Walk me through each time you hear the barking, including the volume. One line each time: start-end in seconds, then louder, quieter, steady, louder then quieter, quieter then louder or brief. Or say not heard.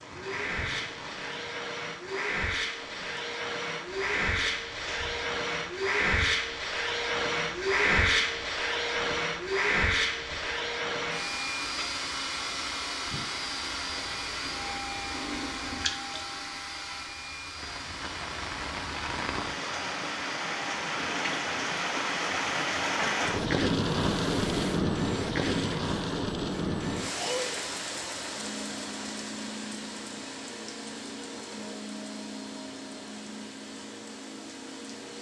not heard.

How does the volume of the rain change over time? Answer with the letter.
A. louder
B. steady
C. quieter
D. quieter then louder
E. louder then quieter
E.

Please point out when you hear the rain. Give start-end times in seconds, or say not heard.
0.0-35.1.